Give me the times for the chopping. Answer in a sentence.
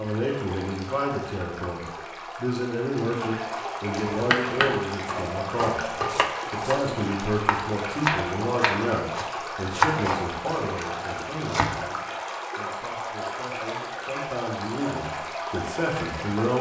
The chopping can be heard from 4.1 to 11.8 s.